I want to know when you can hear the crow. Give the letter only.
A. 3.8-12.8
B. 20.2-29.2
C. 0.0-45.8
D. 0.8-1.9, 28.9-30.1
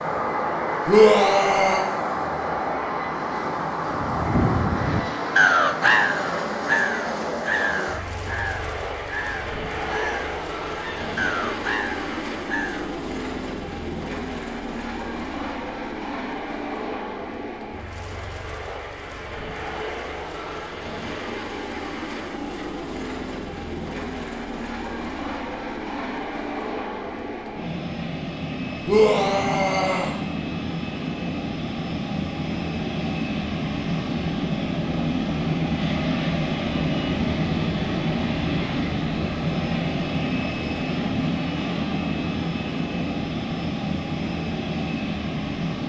A.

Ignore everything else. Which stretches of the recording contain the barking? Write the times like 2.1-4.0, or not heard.
not heard.